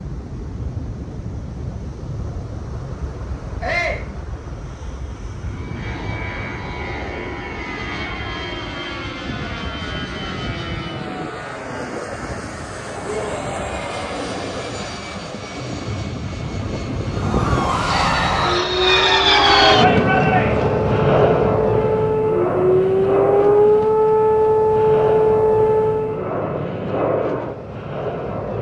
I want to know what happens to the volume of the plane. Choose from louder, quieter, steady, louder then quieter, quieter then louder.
louder then quieter.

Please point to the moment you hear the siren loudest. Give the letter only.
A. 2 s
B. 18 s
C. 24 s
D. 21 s
C.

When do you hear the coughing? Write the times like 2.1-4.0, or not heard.
not heard.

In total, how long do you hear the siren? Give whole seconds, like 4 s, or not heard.
9 s.